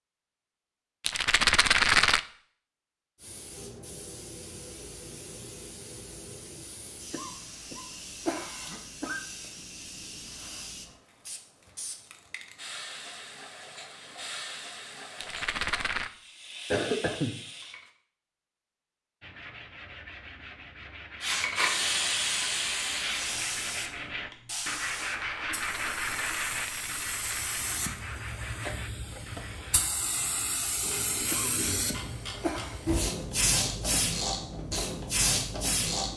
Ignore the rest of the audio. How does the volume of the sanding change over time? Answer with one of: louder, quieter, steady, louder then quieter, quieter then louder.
louder then quieter.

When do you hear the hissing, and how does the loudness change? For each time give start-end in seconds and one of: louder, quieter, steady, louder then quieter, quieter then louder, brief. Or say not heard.
3.1-17.9 steady
21.2-36.1 quieter then louder.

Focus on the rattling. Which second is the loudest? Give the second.
2 s.